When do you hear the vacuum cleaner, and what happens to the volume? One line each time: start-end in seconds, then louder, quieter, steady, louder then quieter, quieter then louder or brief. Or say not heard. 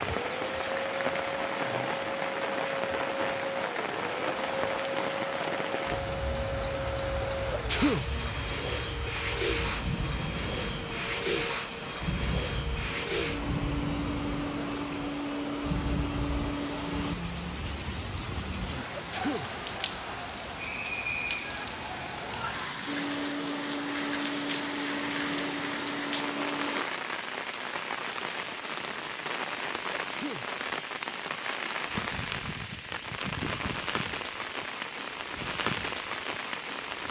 0.0-17.1 steady
22.9-26.9 steady.